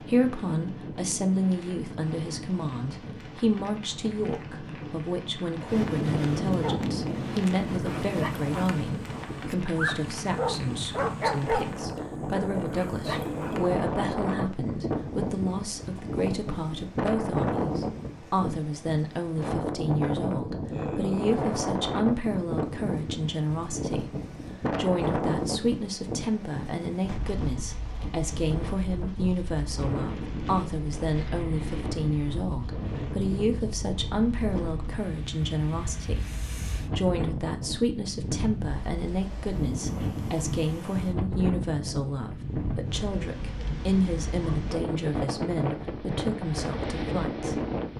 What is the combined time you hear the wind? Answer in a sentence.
The wind can be heard for 48 seconds in total.